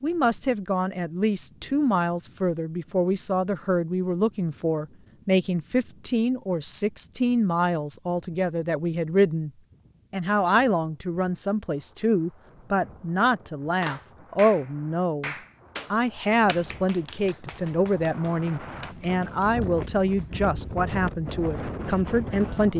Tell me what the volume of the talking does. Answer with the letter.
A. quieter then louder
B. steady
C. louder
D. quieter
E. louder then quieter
B.